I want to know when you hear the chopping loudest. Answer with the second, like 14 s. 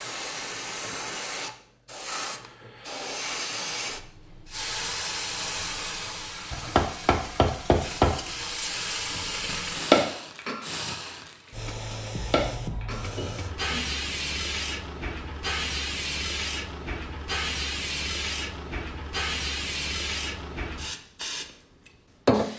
10 s.